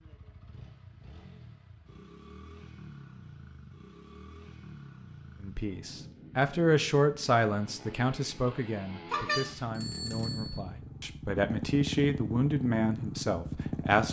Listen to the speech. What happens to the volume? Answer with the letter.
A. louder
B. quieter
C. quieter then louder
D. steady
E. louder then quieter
C.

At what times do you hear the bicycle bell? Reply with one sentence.
The bicycle bell can be heard from 9.1 to 10.6 s.